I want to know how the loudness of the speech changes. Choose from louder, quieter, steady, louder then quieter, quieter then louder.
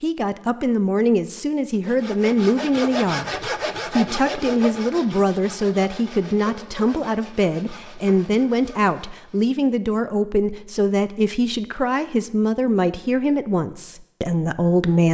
steady.